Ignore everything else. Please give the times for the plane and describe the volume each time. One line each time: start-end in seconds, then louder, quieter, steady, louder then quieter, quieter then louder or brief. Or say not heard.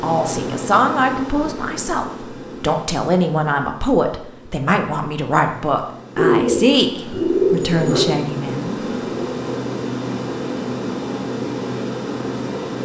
0.0-12.7 quieter then louder.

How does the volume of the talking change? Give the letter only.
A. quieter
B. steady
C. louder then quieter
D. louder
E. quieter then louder
B.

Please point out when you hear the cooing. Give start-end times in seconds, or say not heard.
6.2-8.1.